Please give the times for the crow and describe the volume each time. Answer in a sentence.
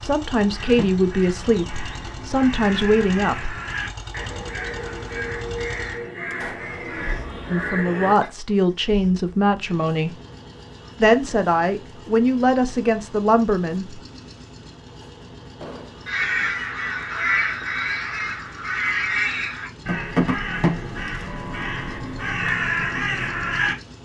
The crow can be heard from 0.5 to 8.3 s, getting louder; and from 16.1 to 23.8 s, at a steady volume.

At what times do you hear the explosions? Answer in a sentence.
You can hear the explosions from 6.3 to 6.8 s and from 15.6 to 16.1 s.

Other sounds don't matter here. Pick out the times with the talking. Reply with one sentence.
You can hear the talking from 0.0 to 3.5 s, from 7.5 to 10.1 s and from 11.0 to 14.0 s.